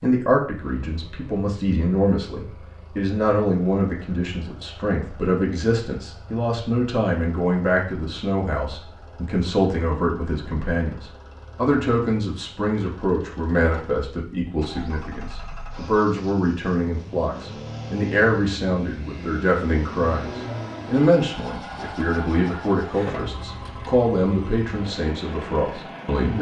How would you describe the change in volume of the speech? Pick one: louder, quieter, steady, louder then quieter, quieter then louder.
steady.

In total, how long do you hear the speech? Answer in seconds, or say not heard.
26 s.